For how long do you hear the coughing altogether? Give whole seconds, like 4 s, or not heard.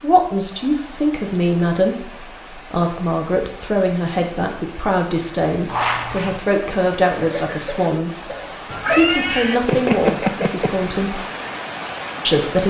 2 s.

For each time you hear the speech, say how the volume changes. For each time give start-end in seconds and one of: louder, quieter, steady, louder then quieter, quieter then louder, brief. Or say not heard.
0.0-8.2 steady
8.8-11.2 brief
12.2-12.6 brief.